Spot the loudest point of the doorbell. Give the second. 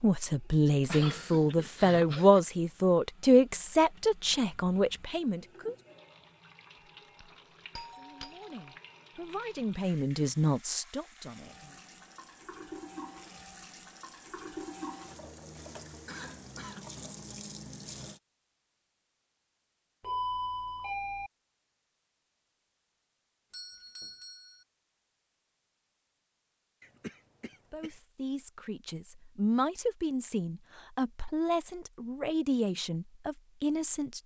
20 s.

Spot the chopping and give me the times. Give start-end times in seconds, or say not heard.
not heard.